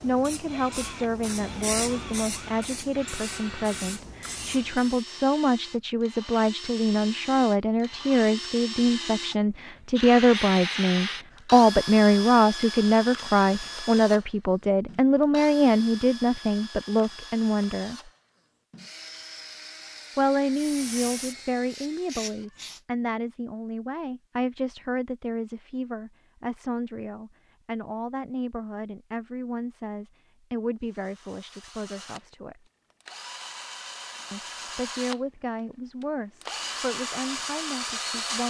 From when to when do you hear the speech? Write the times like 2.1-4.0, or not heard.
0.0-18.0, 20.1-32.6, 34.3-38.4.